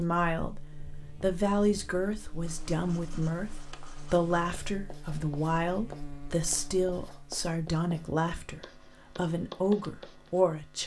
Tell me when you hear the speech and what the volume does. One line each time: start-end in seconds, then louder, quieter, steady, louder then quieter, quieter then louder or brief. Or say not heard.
0.0-0.6 brief
1.2-10.8 steady.